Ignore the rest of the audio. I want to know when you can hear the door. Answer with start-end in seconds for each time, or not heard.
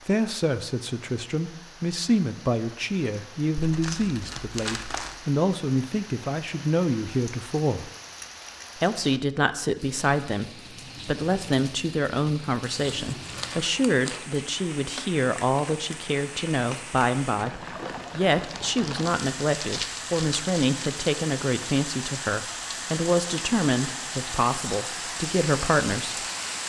not heard.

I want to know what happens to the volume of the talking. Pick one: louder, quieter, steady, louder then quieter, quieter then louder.
steady.